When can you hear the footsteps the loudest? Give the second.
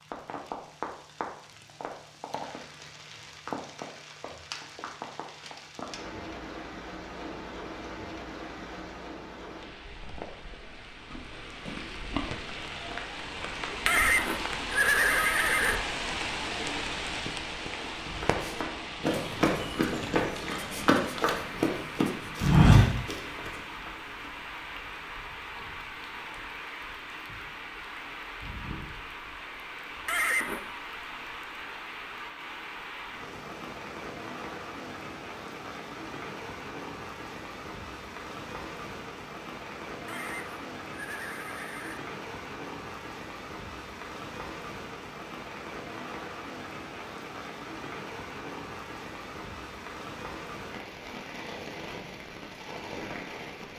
23 s.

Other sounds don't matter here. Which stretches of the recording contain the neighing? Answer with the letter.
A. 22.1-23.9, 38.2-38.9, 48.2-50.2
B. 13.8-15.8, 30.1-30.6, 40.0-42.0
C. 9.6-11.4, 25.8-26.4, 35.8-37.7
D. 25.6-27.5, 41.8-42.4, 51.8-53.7
B.